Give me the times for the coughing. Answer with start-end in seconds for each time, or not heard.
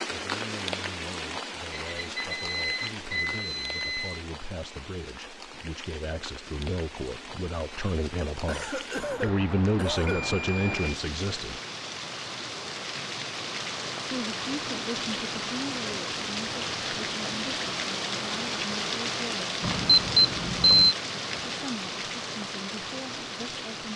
8.4-10.2.